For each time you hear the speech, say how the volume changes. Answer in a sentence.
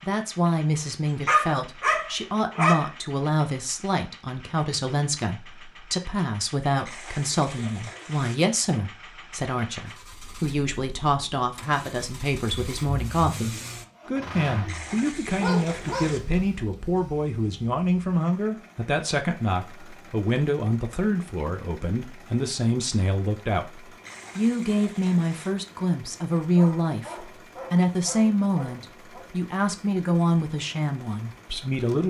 You can hear the speech from 0.0 to 32.0 s, at a steady volume.